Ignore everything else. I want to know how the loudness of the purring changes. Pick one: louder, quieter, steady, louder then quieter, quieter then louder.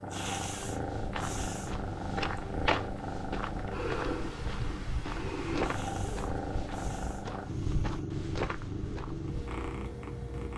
steady.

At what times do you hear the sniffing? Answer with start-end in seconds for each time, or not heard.
0.1-1.8, 5.6-7.3.